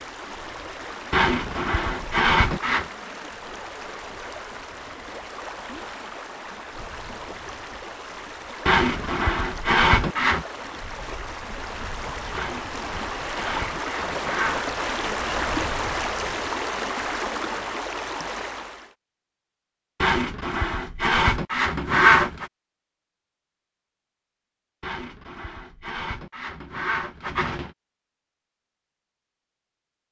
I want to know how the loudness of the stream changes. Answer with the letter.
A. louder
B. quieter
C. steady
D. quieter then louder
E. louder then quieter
A.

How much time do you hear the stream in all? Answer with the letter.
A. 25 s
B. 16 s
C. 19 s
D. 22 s
C.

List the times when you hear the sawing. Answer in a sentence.
The sawing can be heard from 1.1 to 2.9 s, from 8.7 to 10.4 s, from 12.3 to 14.8 s, from 20.0 to 22.4 s and from 24.8 to 27.8 s.